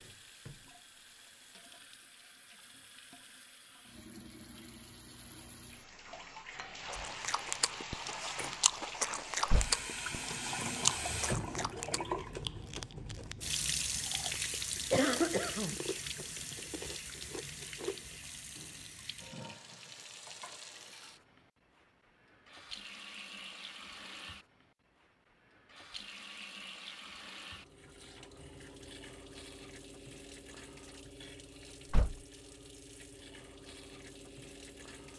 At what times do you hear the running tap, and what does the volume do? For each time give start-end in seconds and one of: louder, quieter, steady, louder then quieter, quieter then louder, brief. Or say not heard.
0.0-35.1 louder then quieter.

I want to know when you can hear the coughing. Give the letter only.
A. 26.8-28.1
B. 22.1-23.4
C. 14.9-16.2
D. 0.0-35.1
C.